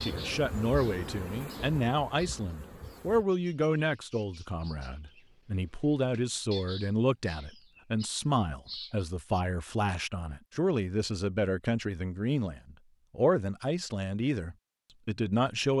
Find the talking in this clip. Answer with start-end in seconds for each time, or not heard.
0.0-15.7.